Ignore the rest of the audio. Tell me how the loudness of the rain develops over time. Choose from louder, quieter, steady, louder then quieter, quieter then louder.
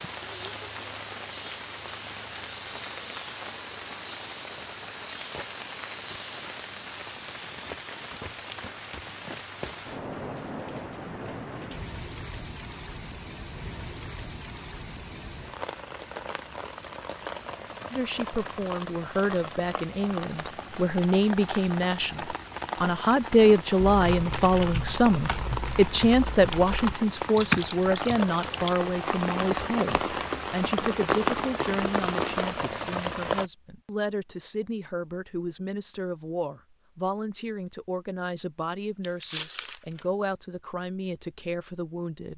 louder.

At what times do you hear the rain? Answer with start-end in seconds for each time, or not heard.
0.0-33.5.